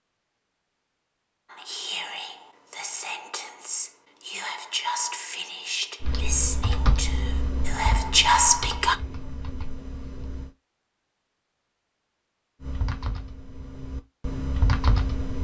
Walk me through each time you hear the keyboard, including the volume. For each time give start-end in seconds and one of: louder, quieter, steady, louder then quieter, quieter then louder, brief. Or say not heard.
6.0-10.6 quieter
12.6-15.3 brief.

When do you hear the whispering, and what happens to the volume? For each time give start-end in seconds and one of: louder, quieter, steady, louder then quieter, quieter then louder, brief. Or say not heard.
1.5-8.9 louder.